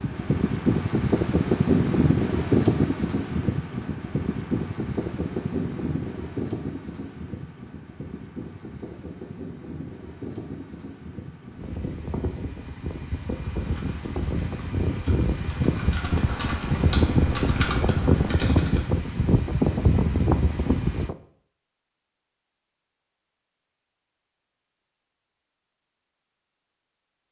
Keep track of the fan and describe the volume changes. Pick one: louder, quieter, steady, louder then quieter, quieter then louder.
quieter then louder.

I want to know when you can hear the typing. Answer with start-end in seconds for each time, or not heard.
13.4-18.9.